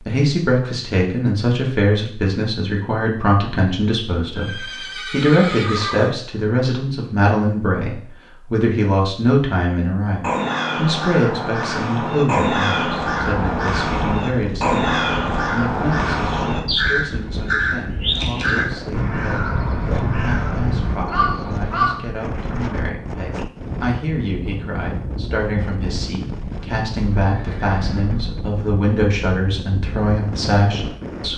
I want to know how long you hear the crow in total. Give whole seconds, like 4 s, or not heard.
12 s.